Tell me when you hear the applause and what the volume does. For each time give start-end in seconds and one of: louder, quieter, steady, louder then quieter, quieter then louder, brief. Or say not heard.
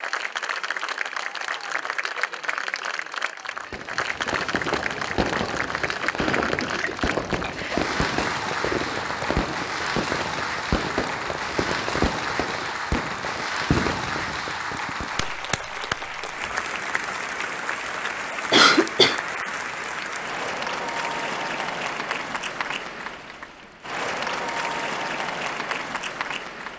0.0-26.7 steady.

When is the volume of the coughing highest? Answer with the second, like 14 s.
19 s.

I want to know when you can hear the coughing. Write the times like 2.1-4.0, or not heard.
6.0-7.9, 18.5-19.2.